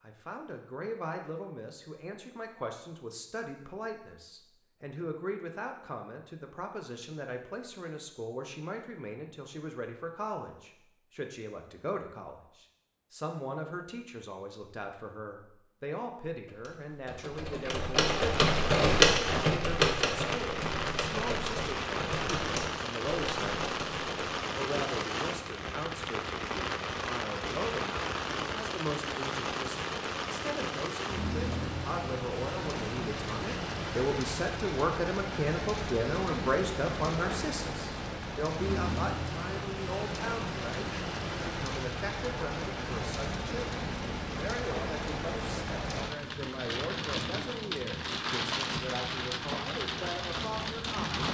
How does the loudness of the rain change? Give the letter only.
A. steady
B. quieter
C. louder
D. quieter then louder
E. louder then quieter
A.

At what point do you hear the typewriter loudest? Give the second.
19 s.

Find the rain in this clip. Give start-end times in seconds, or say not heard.
18.0-51.2.